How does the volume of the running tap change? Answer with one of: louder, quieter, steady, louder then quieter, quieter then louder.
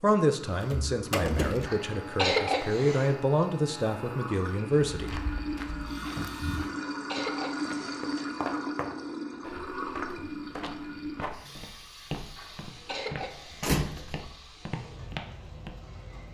louder then quieter.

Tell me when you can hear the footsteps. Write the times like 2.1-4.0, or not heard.
4.9-15.8.